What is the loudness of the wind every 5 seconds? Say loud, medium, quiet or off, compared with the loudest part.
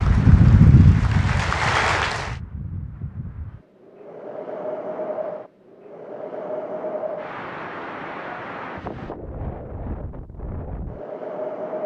loud, medium, medium.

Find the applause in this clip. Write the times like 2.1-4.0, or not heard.
0.0-2.4.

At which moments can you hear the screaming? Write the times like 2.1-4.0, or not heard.
not heard.